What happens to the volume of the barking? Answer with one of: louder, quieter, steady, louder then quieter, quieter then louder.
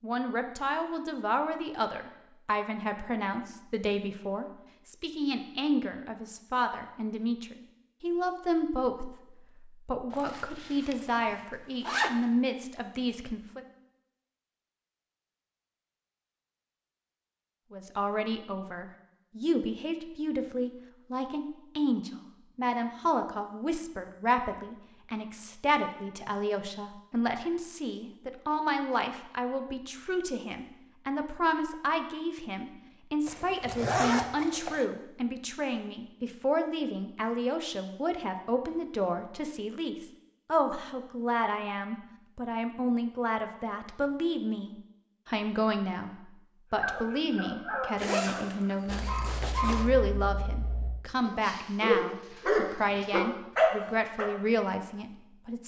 quieter then louder.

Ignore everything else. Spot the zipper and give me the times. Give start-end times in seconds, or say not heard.
10.1-12.1, 33.2-34.9, 48.0-49.9.